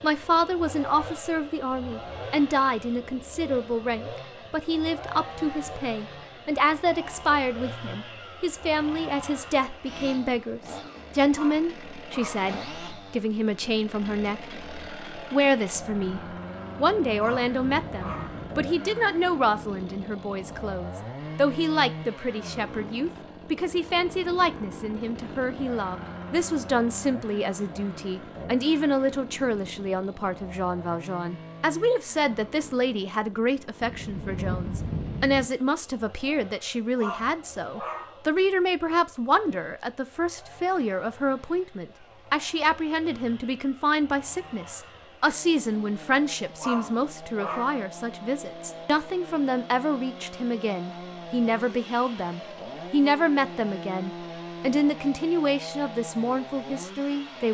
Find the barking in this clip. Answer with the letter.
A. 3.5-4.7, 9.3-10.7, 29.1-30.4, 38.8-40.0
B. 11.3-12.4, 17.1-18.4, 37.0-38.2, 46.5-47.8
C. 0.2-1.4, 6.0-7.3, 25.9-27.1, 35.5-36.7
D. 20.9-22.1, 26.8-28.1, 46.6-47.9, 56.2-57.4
B.